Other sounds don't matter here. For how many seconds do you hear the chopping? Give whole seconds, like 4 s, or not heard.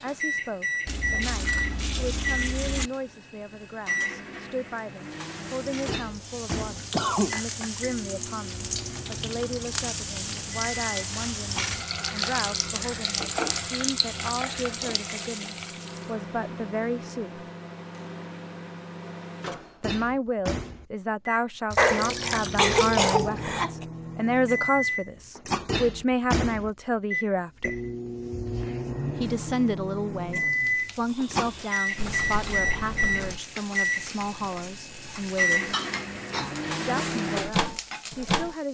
not heard.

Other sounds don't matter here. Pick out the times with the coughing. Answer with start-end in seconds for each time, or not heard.
6.9-7.3, 21.8-23.9, 35.7-37.1.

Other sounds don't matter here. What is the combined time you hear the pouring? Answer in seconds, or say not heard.
5 s.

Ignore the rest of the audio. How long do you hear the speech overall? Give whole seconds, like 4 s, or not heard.
34 s.